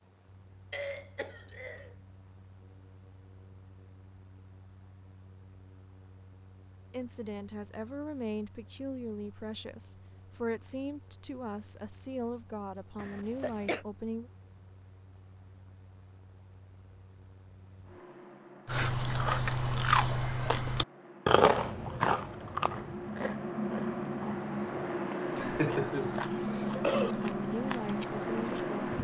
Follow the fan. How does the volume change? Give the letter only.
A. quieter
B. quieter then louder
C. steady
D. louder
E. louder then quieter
D.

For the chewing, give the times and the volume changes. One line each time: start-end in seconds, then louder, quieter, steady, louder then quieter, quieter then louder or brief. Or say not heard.
18.6-28.7 quieter.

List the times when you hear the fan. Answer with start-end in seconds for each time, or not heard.
0.0-28.9.